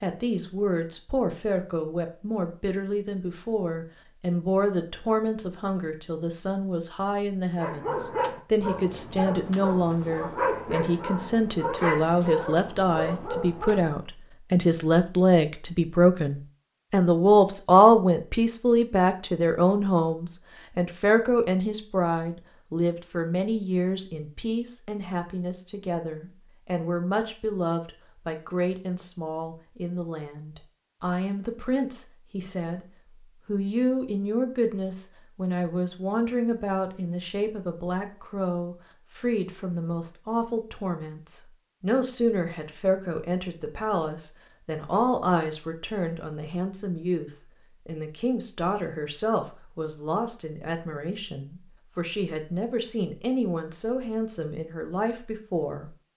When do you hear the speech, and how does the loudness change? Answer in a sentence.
You can hear the speech from 0.0 to 32.9 s, getting louder then quieter; and from 33.5 to 56.0 s, at a steady volume.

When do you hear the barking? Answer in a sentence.
The barking can be heard from 7.5 to 13.9 s.